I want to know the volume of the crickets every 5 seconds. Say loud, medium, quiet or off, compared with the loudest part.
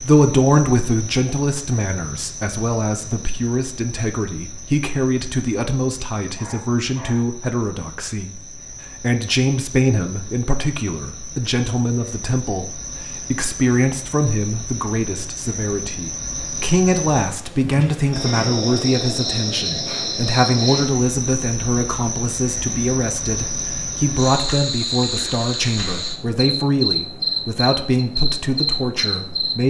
medium, quiet, medium, loud, loud, loud.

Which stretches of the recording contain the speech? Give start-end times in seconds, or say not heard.
0.0-8.4, 9.0-29.6.